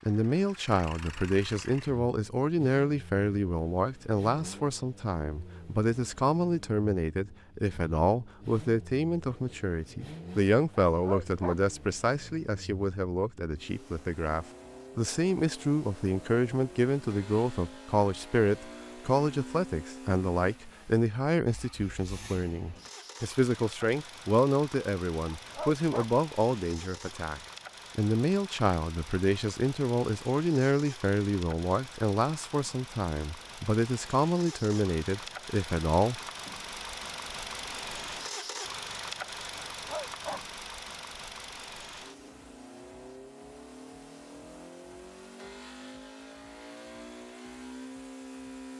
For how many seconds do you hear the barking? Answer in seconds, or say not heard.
2 s.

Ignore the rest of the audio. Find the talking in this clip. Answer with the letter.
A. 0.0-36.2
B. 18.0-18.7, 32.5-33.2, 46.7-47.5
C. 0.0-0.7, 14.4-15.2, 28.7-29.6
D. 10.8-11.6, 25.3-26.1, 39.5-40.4
A.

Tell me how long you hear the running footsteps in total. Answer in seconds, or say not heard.
not heard.